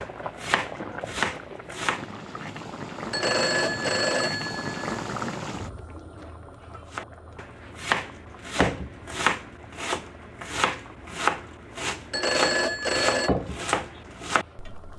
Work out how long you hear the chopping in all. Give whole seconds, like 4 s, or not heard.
10 s.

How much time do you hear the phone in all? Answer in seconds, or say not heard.
3 s.